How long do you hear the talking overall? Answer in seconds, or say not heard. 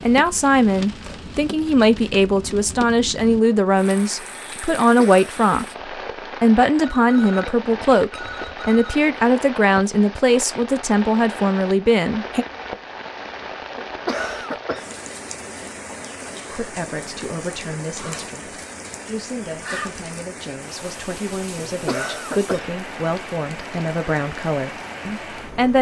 21 s.